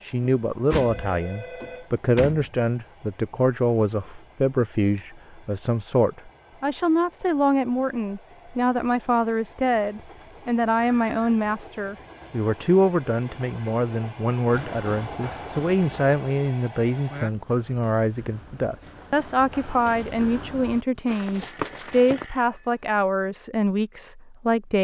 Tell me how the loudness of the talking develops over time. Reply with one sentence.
The volume of the talking stays about the same.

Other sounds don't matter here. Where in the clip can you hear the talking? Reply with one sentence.
You can hear the talking from 0.0 to 24.8 s.